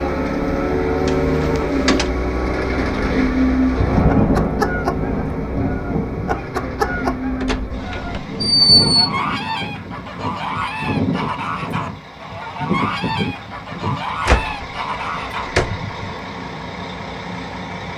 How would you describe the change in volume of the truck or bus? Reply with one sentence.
The loudness of the truck or bus goes down.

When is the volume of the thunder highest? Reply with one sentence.
The loudest moment of the thunder is at 4 seconds.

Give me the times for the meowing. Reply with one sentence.
You can't hear the meowing here.